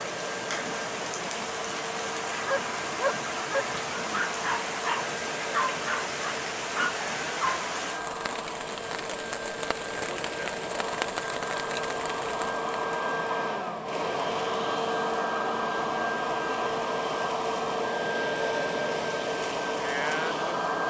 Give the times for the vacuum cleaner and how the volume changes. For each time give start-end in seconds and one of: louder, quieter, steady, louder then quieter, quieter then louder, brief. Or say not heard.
0.0-20.8 louder.